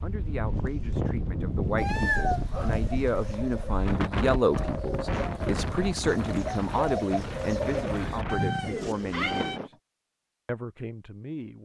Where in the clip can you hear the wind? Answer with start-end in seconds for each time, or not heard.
0.0-9.7.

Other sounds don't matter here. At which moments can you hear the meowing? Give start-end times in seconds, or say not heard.
1.8-3.5, 8.2-9.6.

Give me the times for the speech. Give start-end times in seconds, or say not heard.
0.0-9.8, 10.4-11.5.